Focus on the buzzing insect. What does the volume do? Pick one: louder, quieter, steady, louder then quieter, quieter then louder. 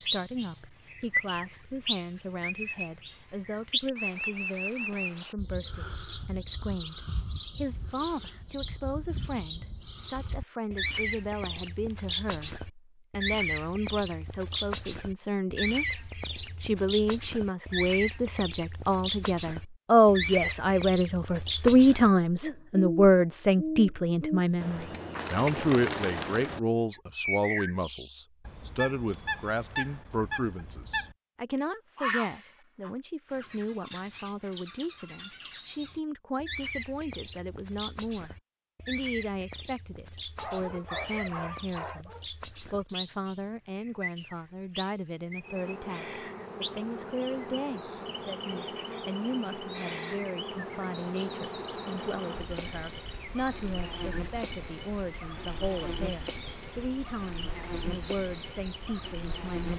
steady.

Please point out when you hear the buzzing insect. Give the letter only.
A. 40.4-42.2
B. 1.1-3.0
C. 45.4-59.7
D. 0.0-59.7
C.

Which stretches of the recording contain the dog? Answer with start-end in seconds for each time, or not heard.
40.4-42.2.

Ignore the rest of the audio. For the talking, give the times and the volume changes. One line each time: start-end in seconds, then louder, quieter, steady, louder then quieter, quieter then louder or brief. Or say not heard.
0.0-59.7 louder then quieter.